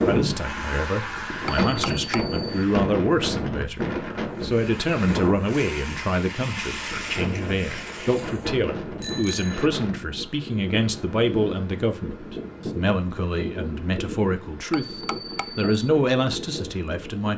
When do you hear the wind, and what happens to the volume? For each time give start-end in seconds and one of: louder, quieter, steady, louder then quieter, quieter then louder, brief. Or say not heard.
0.0-17.3 quieter.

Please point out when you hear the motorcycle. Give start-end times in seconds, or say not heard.
not heard.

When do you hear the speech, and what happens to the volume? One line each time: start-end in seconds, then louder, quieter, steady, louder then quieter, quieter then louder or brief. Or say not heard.
0.1-17.3 steady.